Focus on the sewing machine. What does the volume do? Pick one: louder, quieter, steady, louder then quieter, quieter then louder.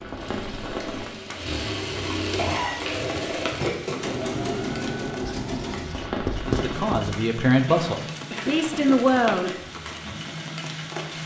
quieter.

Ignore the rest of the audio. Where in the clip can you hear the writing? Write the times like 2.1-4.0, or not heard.
5.2-7.2.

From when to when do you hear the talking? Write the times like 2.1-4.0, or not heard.
6.5-9.8.